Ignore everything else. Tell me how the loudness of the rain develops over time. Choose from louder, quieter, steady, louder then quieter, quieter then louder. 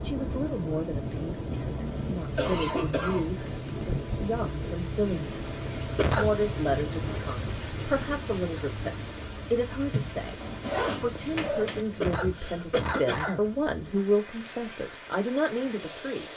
quieter.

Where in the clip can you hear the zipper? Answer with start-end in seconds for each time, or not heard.
9.9-11.8.